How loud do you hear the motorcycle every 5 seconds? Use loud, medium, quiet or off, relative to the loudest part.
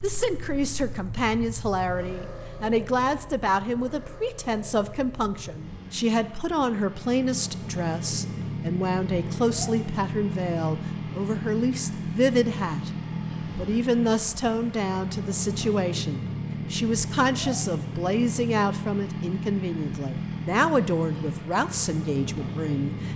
medium, loud, loud, loud, loud.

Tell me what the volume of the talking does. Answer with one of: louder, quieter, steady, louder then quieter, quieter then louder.
steady.